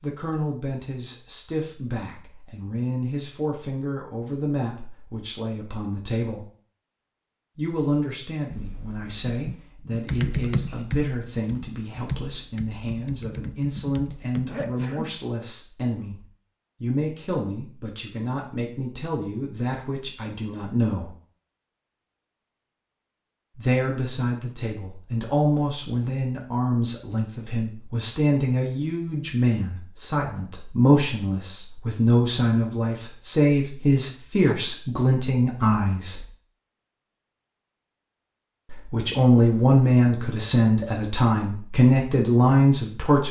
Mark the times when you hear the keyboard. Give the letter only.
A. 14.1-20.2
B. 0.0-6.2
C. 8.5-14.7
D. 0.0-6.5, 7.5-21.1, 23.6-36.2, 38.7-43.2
C.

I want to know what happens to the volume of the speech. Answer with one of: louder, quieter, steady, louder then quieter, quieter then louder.
louder.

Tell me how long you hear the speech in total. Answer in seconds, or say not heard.
37 s.